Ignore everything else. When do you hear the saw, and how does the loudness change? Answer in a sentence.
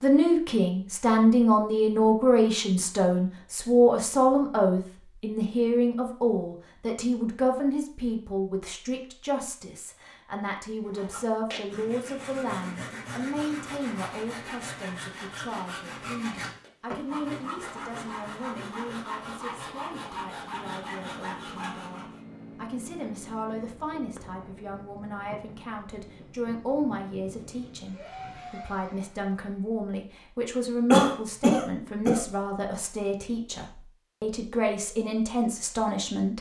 The saw can be heard from 10.8 to 22.2 s, at a steady volume.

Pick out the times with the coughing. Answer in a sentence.
The coughing can be heard from 30.9 to 32.2 s.